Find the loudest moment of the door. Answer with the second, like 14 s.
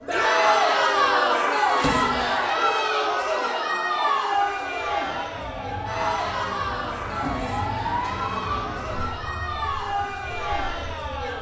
2 s.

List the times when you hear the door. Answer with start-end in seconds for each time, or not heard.
1.8-2.4, 7.2-7.7.